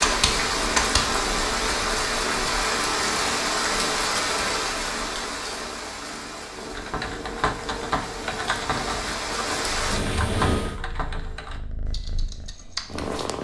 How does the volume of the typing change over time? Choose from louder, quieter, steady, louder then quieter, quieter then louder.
quieter.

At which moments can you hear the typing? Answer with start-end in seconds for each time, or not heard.
6.7-13.1.